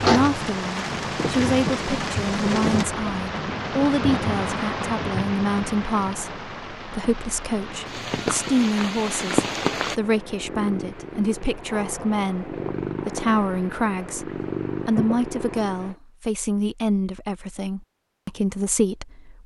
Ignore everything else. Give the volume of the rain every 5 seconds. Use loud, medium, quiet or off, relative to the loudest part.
loud, loud, off, off.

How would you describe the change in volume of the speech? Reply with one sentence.
The loudness of the speech stays about the same.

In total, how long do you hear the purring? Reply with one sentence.
The purring can be heard for 6 seconds in total.